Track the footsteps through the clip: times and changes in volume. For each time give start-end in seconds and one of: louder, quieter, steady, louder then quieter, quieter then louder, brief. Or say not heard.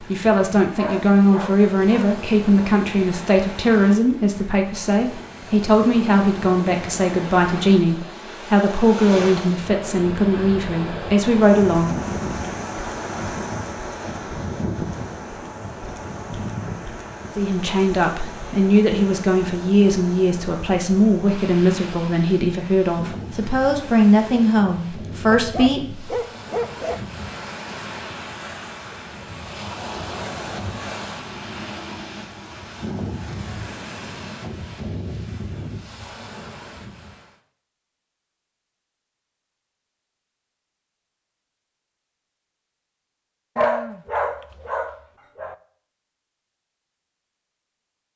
not heard.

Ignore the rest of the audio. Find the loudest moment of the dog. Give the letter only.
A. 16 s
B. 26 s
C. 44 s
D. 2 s
C.